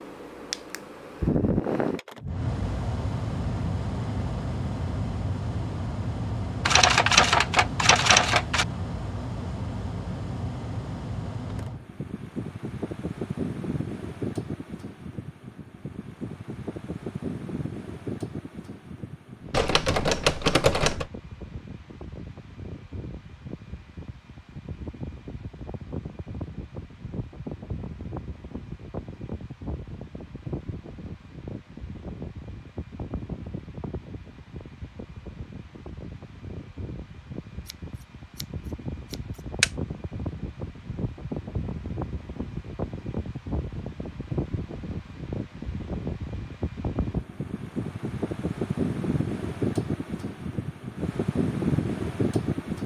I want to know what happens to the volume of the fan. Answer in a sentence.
The loudness of the fan goes down, then up.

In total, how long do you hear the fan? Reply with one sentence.
You can hear the fan for 53 seconds altogether.